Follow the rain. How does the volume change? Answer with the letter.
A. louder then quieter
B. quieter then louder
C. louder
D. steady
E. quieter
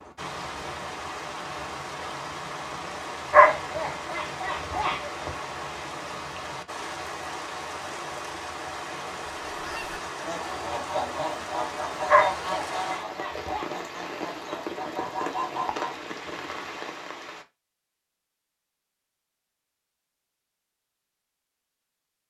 D.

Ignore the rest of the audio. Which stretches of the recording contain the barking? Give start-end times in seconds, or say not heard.
3.3-5.3, 12.1-13.7.